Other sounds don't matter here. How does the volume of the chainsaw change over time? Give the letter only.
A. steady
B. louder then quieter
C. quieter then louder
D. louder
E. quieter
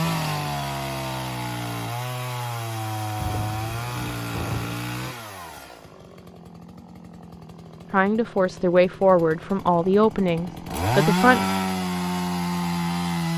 C.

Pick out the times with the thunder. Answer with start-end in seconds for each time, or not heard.
3.1-4.8.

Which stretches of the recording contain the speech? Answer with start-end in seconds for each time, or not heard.
7.9-11.4.